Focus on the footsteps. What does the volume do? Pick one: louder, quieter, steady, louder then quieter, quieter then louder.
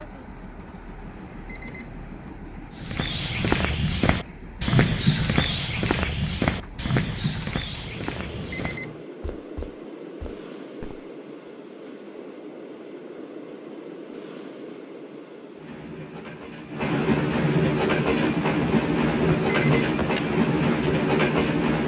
quieter.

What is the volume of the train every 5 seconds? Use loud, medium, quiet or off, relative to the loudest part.
quiet, quiet, quiet, loud, loud.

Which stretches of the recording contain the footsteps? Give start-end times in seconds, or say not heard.
2.8-11.1.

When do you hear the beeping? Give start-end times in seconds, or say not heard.
1.1-2.3, 8.1-9.1, 19.3-20.1.